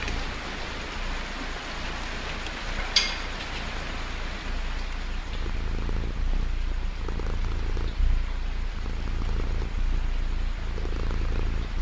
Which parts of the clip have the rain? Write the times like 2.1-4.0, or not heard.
0.0-11.7.